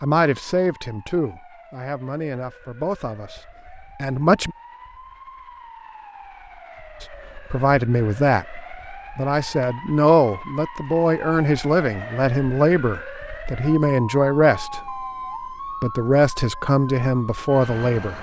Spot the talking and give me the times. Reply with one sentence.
You can hear the talking from 0.0 to 4.5 s, from 7.0 to 15.1 s and from 15.8 to 18.1 s.